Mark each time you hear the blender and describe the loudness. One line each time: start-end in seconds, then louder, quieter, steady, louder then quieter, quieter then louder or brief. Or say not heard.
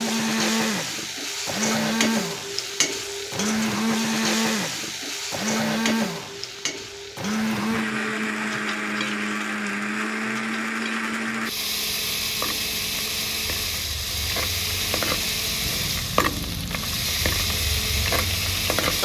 0.0-18.9 steady.